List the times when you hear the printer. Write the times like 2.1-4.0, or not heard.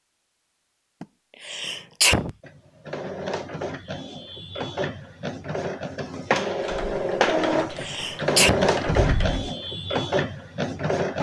2.4-11.1.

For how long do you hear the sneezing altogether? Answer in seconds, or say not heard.
3 s.